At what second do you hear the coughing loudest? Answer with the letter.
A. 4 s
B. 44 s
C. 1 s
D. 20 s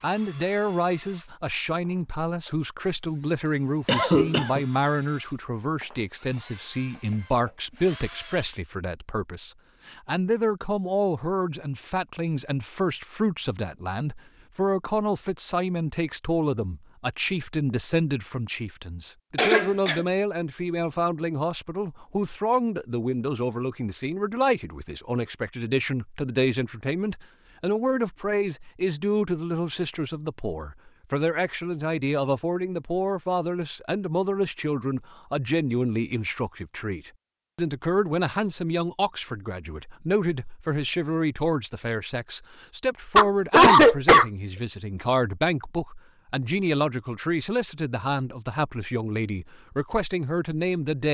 B.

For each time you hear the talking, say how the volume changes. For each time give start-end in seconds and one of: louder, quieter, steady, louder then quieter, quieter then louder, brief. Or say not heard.
0.0-51.0 steady.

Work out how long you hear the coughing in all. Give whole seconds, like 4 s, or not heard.
3 s.